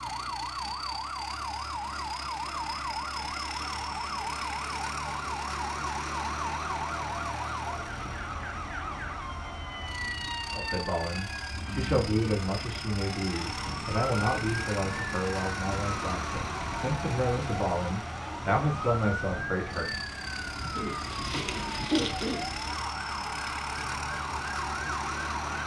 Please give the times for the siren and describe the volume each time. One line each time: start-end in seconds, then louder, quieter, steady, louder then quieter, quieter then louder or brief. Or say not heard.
0.0-25.6 steady.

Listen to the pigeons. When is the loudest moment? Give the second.
22 s.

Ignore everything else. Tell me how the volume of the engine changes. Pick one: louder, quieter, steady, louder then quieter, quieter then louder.
steady.